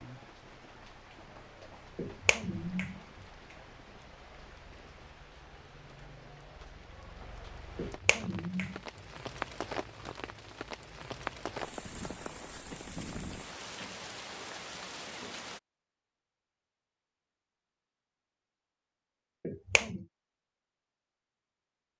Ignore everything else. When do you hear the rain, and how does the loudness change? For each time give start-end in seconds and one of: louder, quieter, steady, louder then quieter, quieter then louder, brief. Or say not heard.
0.0-15.6 louder.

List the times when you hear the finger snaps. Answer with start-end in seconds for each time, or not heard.
1.9-3.0, 7.8-8.8, 19.4-20.1.